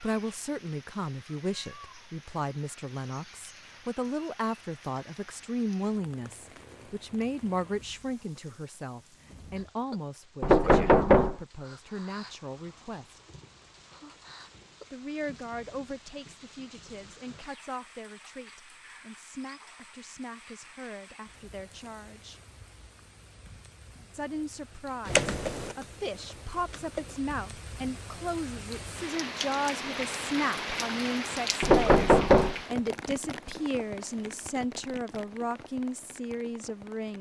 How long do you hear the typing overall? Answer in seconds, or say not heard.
2 s.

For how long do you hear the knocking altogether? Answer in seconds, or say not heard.
2 s.